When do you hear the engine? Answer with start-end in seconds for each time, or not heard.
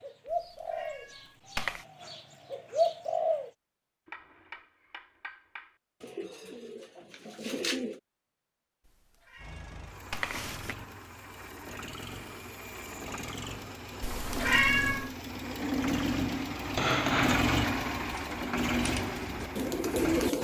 9.3-20.3.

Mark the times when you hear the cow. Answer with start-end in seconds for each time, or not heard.
not heard.